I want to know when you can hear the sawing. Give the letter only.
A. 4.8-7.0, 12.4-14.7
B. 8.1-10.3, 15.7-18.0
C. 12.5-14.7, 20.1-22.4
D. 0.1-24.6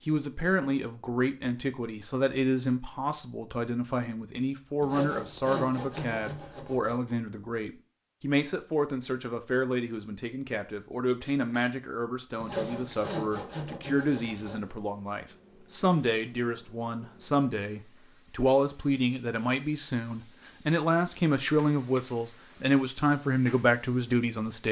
A.